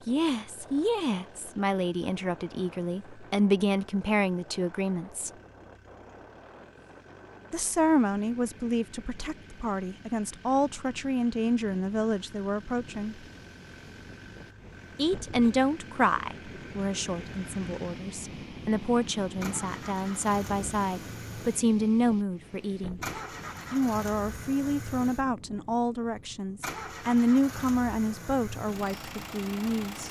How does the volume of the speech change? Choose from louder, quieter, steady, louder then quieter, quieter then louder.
steady.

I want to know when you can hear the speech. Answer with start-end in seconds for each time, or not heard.
0.1-5.3, 7.5-13.2, 14.9-23.0, 23.7-30.0.